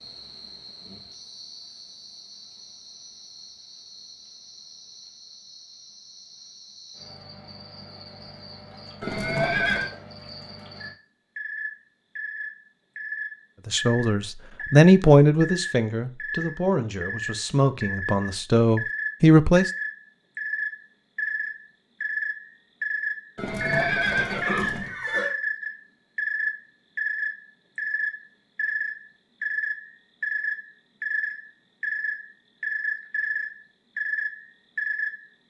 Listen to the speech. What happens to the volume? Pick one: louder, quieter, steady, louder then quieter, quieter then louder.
quieter then louder.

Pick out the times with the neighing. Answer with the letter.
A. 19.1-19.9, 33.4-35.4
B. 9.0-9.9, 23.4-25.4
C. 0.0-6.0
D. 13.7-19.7
B.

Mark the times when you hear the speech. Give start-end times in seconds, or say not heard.
13.7-19.7.